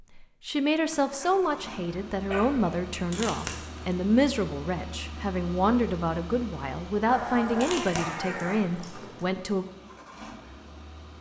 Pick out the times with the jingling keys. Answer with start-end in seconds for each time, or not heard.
3.1-4.0, 7.6-9.3.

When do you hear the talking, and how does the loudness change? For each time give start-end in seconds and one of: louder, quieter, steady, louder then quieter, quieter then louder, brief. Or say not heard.
0.1-9.7 steady.